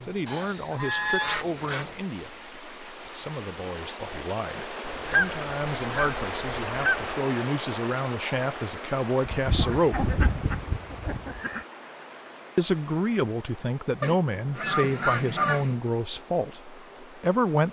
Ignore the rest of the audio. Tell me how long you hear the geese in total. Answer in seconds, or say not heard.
8 s.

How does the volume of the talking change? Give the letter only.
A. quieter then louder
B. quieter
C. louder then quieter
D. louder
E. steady
D.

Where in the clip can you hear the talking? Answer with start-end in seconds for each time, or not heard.
0.1-10.1, 12.6-17.6.